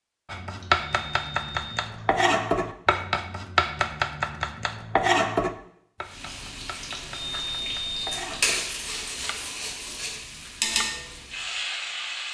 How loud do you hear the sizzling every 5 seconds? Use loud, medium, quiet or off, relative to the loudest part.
off, loud, loud.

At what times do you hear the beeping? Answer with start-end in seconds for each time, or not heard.
0.6-2.1, 6.9-8.5.